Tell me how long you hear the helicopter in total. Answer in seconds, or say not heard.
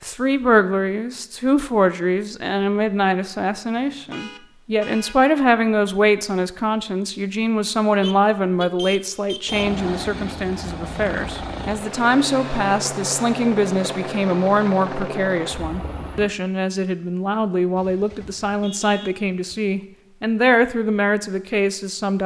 7 s.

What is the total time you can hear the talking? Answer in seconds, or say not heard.
22 s.